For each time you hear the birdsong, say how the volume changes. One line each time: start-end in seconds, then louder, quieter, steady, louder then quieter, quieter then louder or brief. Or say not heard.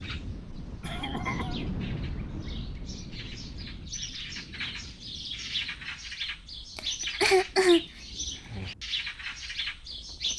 0.0-10.3 louder.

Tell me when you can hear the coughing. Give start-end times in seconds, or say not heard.
0.8-1.6, 6.8-7.8.